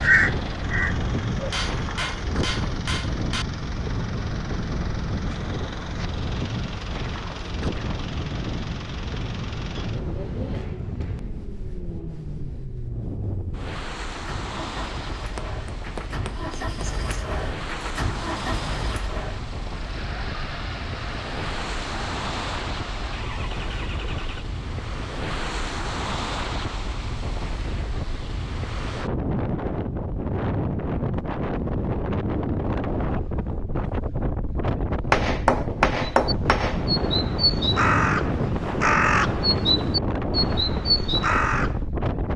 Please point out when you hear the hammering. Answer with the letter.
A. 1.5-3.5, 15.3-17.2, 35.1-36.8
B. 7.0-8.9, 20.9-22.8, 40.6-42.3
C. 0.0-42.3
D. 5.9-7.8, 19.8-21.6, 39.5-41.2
A.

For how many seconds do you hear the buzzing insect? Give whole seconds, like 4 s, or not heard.
not heard.